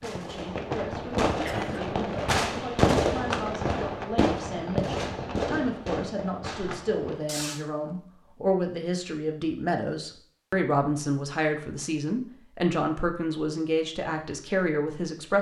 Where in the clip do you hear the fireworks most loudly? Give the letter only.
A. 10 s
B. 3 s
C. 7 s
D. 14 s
B.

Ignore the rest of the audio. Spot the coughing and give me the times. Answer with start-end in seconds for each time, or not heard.
1.4-1.9.